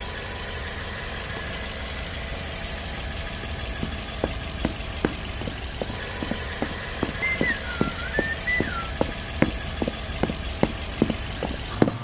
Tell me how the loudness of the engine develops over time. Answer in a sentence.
The loudness of the engine stays about the same.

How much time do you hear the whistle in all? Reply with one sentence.
You can hear the whistle for 2 seconds altogether.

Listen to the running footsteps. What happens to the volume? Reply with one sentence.
The volume of the running footsteps goes up.